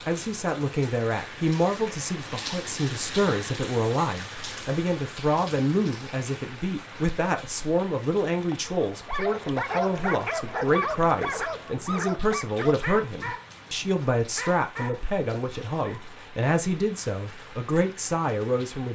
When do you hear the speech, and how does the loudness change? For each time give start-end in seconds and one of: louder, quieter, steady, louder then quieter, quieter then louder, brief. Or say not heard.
0.1-18.9 steady.